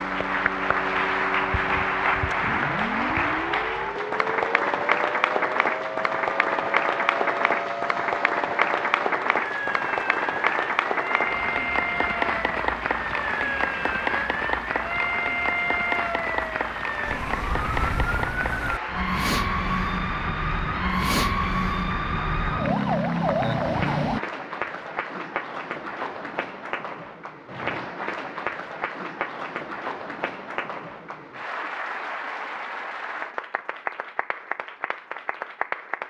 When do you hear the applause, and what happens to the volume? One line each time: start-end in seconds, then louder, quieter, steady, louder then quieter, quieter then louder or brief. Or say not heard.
0.0-36.0 quieter.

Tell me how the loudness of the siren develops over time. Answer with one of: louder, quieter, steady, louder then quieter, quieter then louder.
louder.